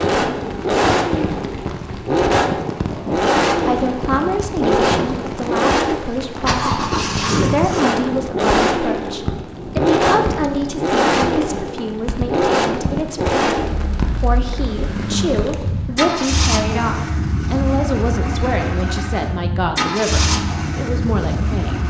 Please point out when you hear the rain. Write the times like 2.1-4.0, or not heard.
0.0-15.9.